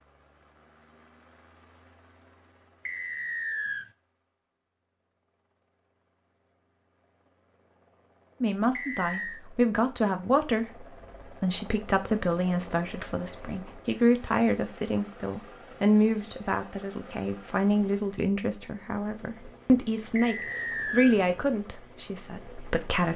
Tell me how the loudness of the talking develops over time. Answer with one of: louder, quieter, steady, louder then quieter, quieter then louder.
steady.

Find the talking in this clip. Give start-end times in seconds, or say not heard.
8.4-23.1.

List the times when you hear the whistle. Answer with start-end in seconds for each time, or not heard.
2.9-3.9, 8.8-9.4, 20.1-21.1.